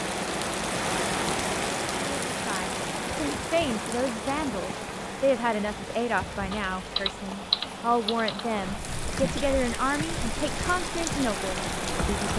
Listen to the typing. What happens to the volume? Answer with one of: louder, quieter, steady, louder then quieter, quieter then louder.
quieter.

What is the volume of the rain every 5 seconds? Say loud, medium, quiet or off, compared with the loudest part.
loud, medium, loud.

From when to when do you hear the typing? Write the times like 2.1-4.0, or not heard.
6.5-12.3.